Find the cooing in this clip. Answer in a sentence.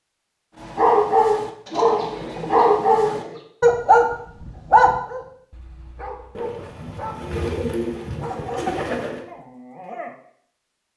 The cooing can be heard from 1.6 to 3.5 s and from 6.3 to 9.2 s.